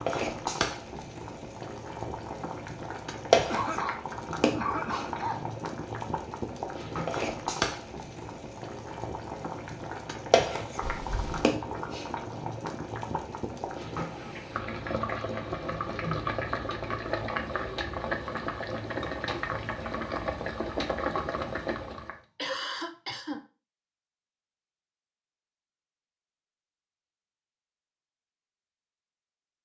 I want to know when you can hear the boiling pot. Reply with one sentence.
The boiling pot can be heard from 0.0 to 22.1 s.